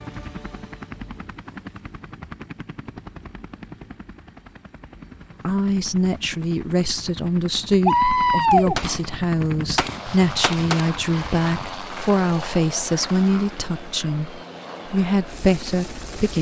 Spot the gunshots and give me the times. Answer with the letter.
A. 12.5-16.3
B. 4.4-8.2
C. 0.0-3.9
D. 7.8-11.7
D.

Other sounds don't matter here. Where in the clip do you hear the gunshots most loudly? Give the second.
8 s.